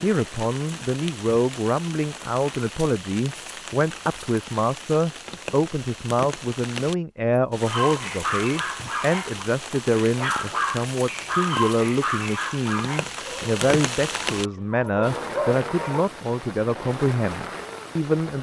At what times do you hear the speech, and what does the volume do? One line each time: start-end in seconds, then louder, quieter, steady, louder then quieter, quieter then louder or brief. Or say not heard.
0.0-18.3 steady.